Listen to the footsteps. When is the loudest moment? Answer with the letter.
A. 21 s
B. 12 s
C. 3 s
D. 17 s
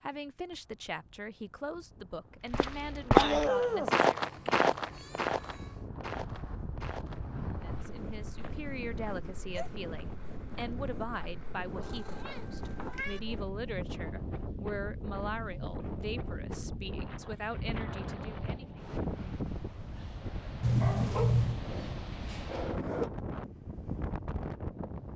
C.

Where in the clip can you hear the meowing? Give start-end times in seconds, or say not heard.
3.5-5.8, 11.8-13.2, 20.6-21.6.